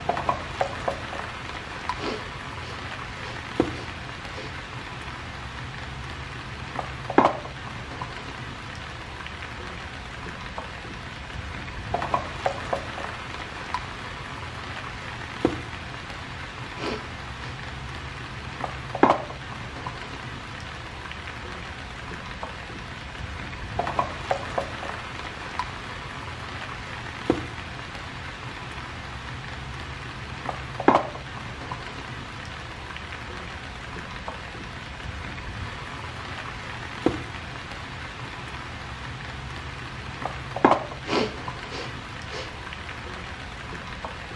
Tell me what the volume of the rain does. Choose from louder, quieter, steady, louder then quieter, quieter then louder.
steady.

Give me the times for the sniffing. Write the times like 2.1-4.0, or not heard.
1.9-4.5, 16.8-17.6, 41.0-42.5.